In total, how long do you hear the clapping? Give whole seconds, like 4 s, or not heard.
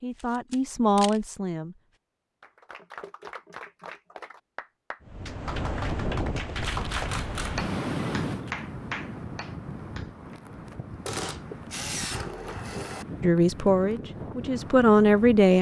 8 s.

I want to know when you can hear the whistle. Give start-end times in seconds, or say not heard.
not heard.